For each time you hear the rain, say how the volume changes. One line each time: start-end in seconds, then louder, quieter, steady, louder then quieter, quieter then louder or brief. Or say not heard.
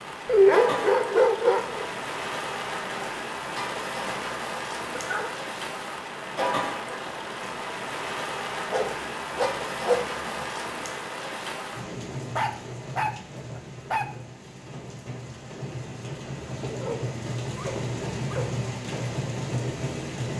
0.0-20.3 quieter then louder.